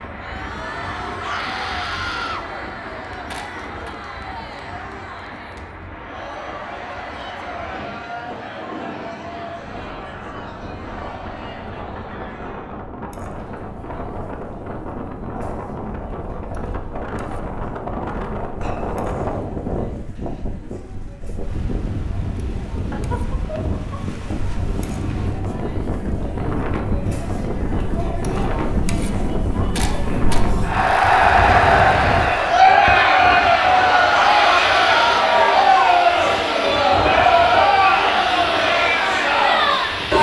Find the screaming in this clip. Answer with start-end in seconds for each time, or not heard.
1.1-2.5, 34.1-35.2.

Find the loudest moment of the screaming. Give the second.
35 s.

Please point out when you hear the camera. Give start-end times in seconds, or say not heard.
3.2-4.0, 29.8-30.4.